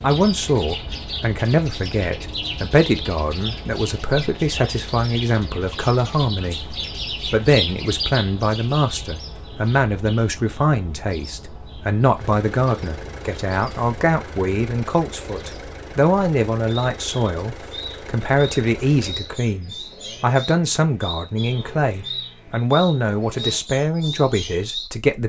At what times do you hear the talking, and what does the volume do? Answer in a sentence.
You can hear the talking from 0.0 to 6.6 s, at a steady volume; and from 7.2 to 25.2 s, at a steady volume.